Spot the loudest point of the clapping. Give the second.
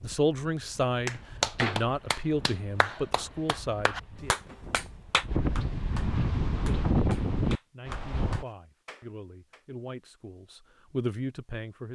2 s.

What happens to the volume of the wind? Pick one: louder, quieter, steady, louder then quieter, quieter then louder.
louder.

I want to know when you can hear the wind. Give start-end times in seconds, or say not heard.
0.0-8.4.